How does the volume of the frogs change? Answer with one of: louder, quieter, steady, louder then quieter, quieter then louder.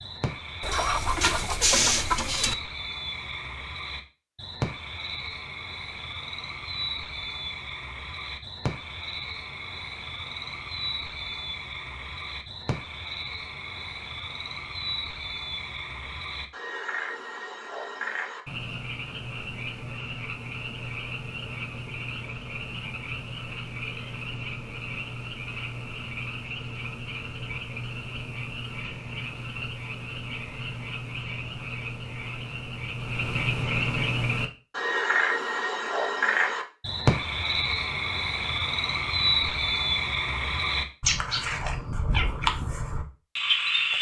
louder.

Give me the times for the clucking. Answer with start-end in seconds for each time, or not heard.
0.6-2.5.